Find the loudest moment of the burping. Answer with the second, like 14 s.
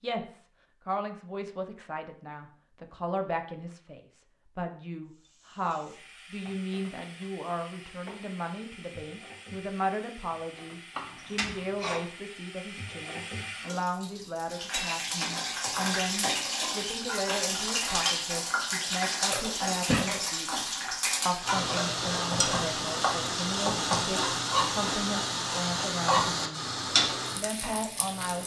20 s.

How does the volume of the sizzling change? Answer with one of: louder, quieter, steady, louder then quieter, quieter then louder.
louder.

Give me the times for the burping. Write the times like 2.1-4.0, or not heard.
10.9-12.0, 19.3-20.2.